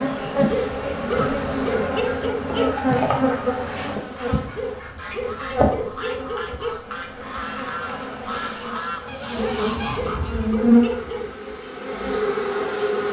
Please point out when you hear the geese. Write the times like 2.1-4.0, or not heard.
1.1-10.6.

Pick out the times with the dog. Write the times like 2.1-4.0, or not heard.
0.5-2.8, 4.5-6.8, 9.3-11.3.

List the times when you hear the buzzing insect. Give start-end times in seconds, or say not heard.
0.0-13.0.